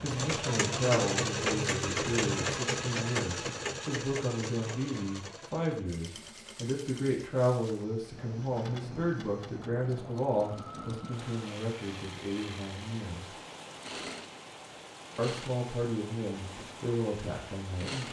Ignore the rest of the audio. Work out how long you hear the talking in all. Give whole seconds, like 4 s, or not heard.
16 s.